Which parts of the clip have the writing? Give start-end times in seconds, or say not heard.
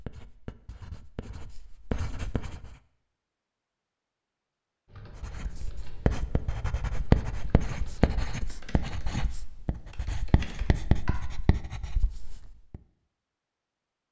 0.0-2.8, 5.2-12.8.